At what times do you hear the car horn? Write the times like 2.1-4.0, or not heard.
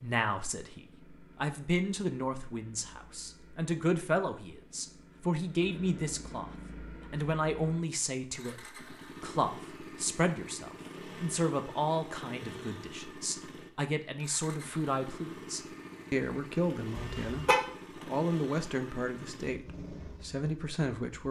16.9-17.6.